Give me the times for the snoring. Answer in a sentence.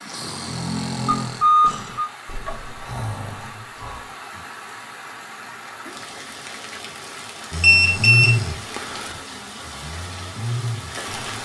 The snoring can be heard from 0.0 to 4.5 s and from 7.5 to 11.4 s.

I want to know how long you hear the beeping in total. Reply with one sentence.
You can hear the beeping for 2 seconds altogether.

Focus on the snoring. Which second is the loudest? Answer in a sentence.
The loudest moment of the snoring is at 8 seconds.